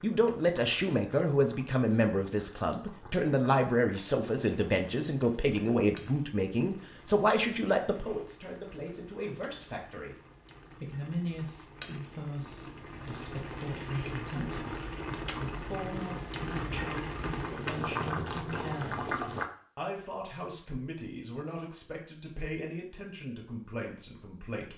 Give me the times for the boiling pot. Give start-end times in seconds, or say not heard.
0.0-19.5.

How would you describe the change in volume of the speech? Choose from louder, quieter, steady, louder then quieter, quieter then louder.
quieter.